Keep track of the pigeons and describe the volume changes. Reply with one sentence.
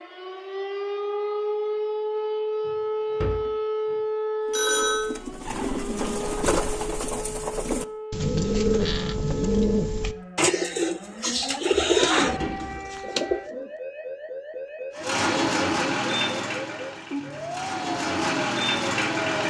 The loudness of the pigeons goes up.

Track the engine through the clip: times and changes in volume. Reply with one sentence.
The engine can be heard from 14.9 to 19.4 s, getting quieter then louder.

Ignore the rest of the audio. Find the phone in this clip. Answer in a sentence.
You can hear the phone from 4.5 to 5.1 s.